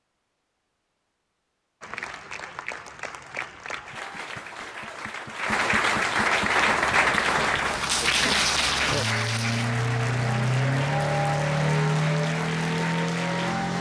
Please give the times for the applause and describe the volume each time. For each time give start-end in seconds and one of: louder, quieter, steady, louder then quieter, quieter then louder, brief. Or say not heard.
1.8-13.7 louder then quieter.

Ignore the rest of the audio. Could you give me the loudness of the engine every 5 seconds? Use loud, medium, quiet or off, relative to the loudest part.
off, medium, loud.